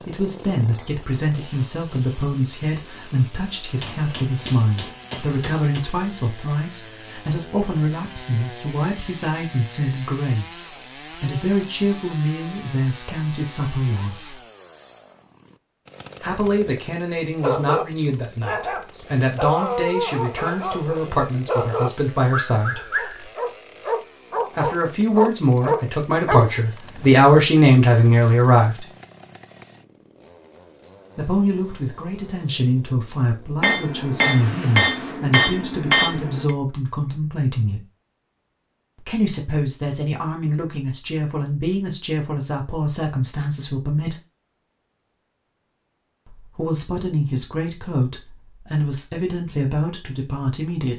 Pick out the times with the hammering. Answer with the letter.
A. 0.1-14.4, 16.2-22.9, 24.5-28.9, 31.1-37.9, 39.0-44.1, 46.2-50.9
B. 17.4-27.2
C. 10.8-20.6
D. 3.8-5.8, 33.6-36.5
D.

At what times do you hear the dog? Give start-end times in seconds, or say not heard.
17.4-27.2.